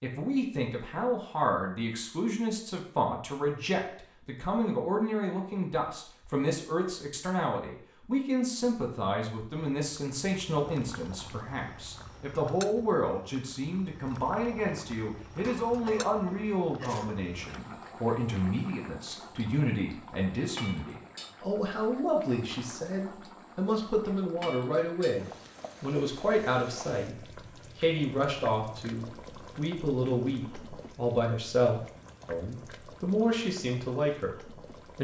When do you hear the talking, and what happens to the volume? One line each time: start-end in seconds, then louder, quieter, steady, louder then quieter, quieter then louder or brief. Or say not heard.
0.0-35.0 steady.